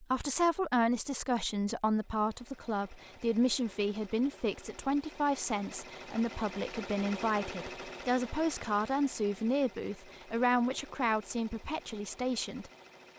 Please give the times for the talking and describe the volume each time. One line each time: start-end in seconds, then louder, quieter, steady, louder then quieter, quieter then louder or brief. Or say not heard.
0.0-12.7 steady.